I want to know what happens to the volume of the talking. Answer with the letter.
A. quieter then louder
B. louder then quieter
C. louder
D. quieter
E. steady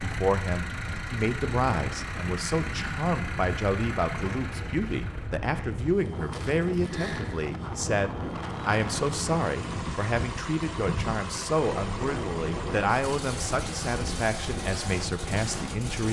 E.